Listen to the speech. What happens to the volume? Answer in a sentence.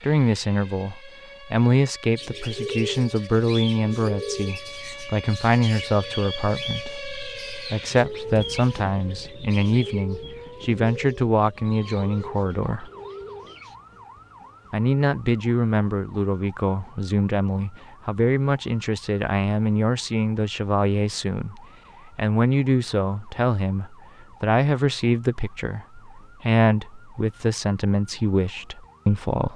The volume of the speech stays about the same.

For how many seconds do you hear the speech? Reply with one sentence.
The speech can be heard for 28 seconds in total.